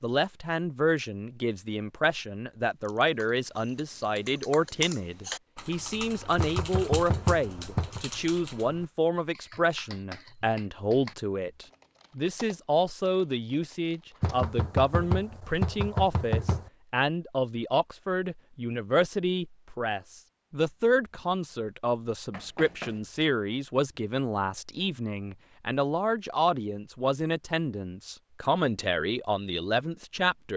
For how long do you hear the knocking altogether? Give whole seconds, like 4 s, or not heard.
5 s.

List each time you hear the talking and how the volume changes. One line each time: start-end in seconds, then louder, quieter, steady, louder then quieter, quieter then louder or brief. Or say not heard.
0.0-30.5 steady.